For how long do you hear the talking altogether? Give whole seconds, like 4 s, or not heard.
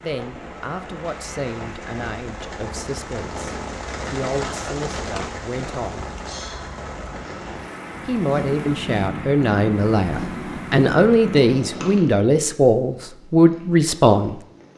12 s.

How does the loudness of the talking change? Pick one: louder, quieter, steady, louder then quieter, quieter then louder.
louder.